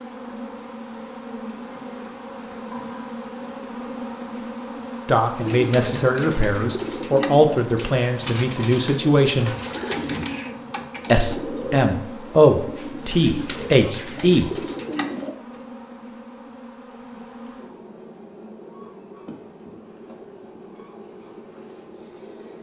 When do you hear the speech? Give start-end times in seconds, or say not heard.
5.0-9.6, 11.1-14.5.